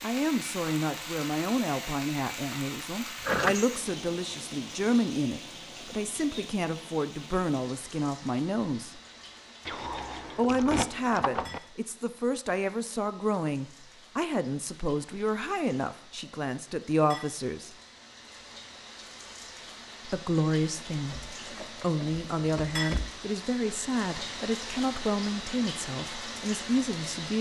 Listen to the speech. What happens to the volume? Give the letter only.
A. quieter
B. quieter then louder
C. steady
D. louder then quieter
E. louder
C.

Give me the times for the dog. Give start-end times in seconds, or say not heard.
not heard.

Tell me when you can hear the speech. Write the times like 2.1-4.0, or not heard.
0.0-9.0, 10.3-17.7, 20.1-27.3.